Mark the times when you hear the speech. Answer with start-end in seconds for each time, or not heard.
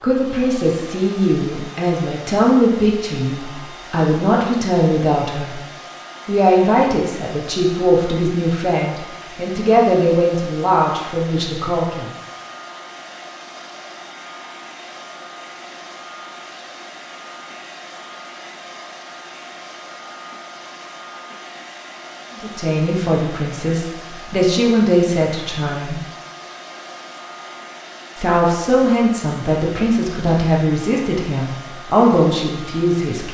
0.0-5.5, 6.2-12.1, 22.4-26.0, 28.1-33.2.